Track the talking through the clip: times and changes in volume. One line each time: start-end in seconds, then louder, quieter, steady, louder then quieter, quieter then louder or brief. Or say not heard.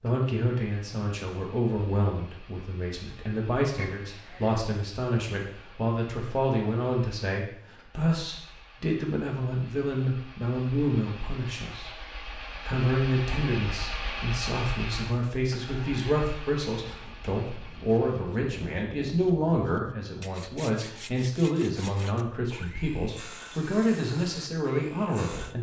0.0-25.5 steady.